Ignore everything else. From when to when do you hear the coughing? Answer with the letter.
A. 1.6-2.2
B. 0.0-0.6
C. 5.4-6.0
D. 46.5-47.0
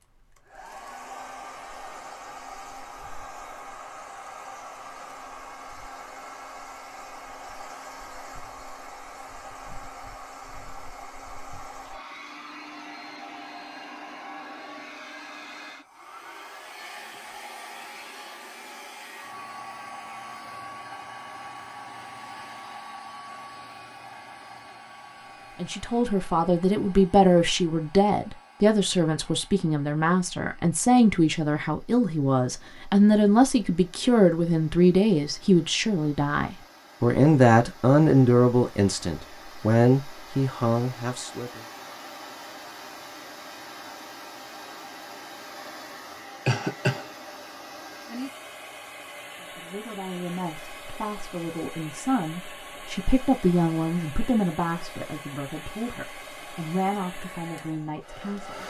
D.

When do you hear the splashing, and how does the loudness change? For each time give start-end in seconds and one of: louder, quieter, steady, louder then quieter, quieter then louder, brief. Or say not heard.
not heard.